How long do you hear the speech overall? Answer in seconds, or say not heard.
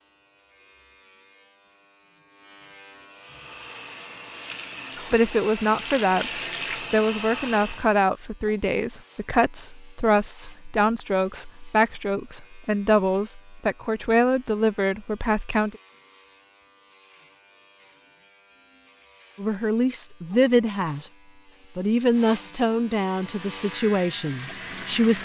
16 s.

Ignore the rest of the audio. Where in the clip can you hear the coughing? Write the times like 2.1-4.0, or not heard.
not heard.